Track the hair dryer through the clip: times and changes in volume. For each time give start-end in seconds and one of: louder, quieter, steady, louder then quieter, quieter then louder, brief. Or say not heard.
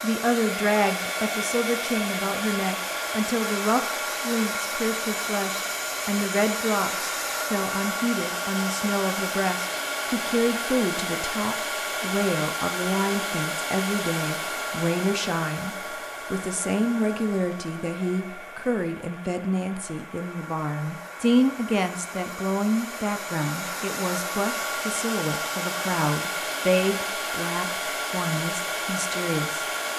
0.0-29.9 quieter then louder.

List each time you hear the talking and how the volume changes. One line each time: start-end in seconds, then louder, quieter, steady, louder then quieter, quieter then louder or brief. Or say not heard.
0.0-29.9 steady.